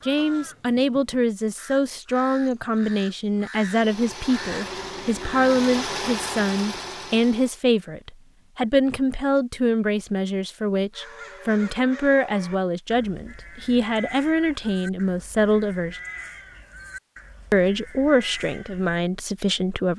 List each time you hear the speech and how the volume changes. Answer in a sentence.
The speech can be heard from 0.1 to 16.0 s, at a steady volume; and briefly from 17.5 to 19.9 s.